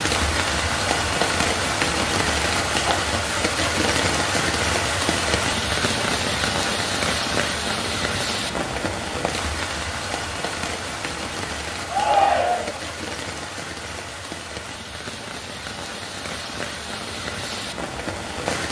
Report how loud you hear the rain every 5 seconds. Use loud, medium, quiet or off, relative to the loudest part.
loud, loud, medium, medium.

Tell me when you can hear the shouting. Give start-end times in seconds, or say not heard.
11.8-12.8.